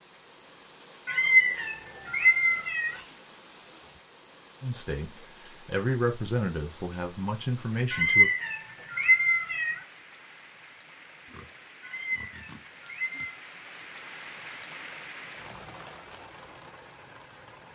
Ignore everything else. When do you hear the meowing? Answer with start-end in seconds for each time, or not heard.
1.1-3.0, 7.9-9.8, 11.8-13.3.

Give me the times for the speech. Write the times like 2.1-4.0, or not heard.
4.6-8.3.